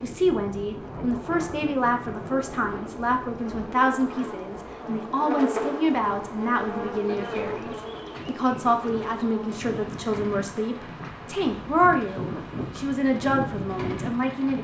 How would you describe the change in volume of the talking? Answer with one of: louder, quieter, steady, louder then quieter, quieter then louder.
steady.